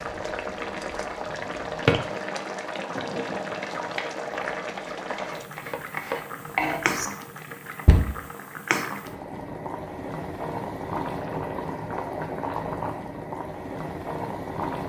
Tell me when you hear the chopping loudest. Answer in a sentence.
The loudest moment of the chopping is at 7 seconds.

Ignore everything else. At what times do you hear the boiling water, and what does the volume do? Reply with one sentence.
You can hear the boiling water from 0.0 to 14.8 s, at a steady volume.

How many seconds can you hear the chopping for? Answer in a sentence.
You can hear the chopping for 3 seconds altogether.